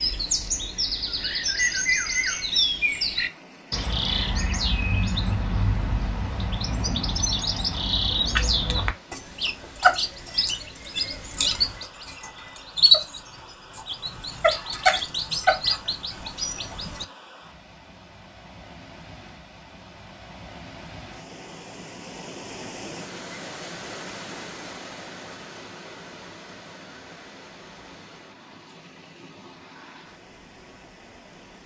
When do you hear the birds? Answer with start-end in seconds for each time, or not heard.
0.0-17.1.